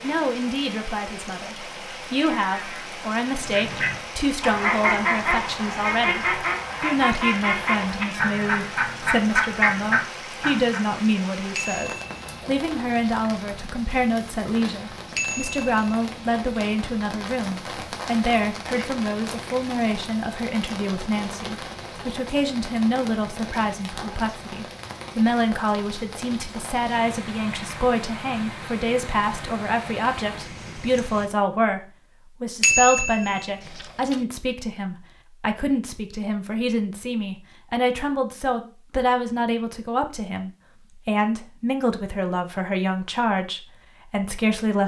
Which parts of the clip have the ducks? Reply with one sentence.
You can hear the ducks from 3.4 to 10.8 s.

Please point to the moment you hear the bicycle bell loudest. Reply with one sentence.
The loudest moment of the bicycle bell is at 33 seconds.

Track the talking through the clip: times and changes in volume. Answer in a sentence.
The talking can be heard from 0.0 to 44.8 s, at a steady volume.